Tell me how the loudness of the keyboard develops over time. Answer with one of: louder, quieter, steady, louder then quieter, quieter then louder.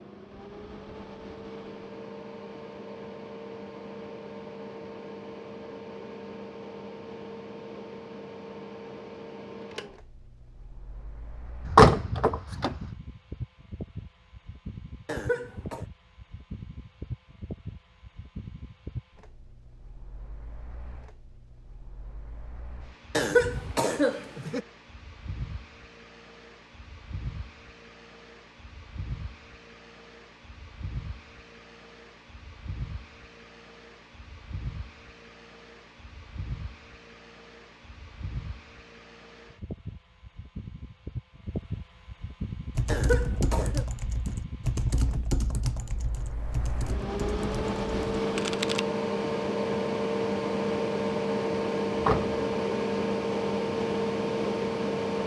quieter.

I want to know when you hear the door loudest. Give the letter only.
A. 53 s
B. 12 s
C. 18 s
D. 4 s
B.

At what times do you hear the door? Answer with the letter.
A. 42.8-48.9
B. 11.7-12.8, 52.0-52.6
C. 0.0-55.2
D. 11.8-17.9
B.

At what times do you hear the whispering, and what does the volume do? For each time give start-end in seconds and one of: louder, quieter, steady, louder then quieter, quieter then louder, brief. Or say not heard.
not heard.